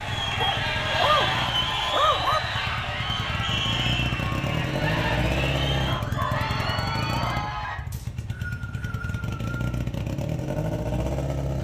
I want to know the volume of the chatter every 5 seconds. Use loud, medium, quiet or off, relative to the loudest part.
loud, loud, off.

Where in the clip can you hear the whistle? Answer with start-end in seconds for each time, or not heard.
3.4-4.2, 7.9-9.8.